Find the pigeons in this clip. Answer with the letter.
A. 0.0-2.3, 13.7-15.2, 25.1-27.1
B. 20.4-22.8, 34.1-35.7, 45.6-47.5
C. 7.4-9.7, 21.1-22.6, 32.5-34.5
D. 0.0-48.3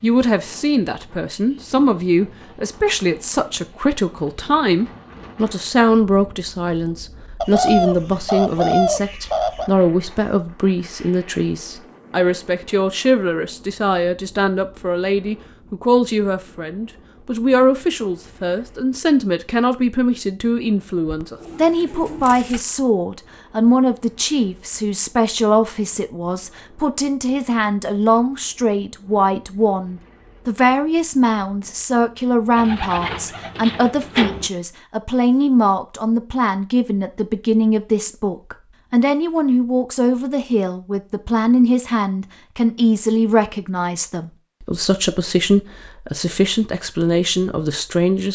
C.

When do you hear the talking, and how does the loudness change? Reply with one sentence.
You can hear the talking from 0.0 to 48.3 s, at a steady volume.